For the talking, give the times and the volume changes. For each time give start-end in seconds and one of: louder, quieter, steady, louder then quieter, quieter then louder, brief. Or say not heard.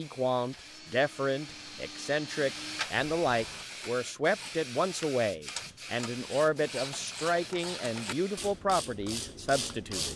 0.0-10.1 steady.